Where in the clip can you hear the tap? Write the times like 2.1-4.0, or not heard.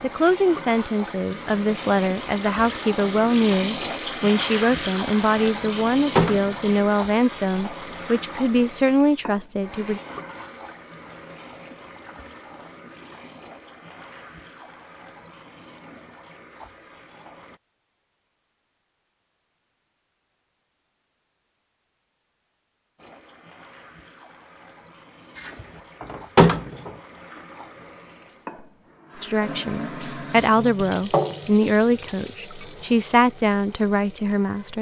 0.0-17.6, 22.9-34.7.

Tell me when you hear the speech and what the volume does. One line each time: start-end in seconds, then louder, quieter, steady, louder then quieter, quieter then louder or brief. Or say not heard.
0.0-10.0 steady
29.2-34.7 steady.